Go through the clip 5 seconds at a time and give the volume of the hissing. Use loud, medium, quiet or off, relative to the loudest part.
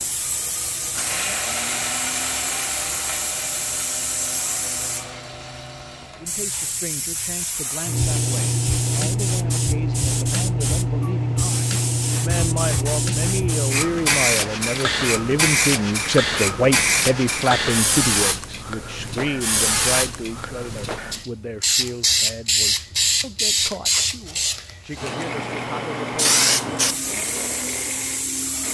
medium, loud, loud, loud, loud, loud.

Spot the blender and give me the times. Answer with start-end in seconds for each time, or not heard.
0.0-6.4, 25.1-28.6.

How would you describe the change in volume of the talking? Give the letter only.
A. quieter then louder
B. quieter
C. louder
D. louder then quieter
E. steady
D.